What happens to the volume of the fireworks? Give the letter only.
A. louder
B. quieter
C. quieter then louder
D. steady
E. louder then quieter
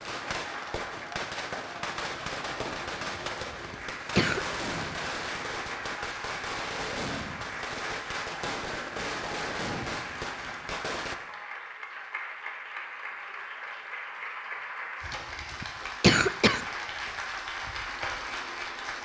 D.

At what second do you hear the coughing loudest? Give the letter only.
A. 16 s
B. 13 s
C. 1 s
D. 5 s
A.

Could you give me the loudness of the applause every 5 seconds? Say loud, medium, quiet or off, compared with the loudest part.
medium, loud, loud, loud.